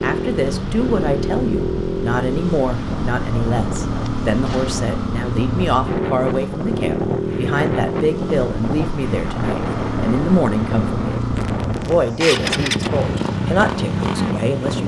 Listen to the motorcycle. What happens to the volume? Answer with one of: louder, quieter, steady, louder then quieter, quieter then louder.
steady.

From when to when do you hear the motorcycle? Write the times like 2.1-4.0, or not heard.
0.0-14.8.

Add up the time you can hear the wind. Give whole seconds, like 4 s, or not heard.
15 s.